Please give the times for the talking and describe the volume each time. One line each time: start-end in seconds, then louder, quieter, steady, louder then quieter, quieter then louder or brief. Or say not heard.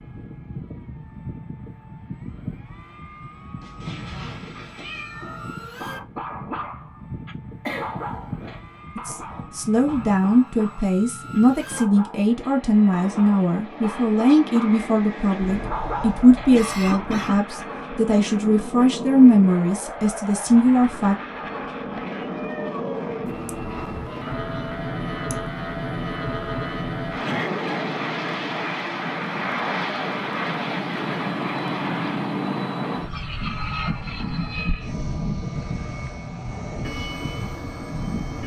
8.9-21.1 steady.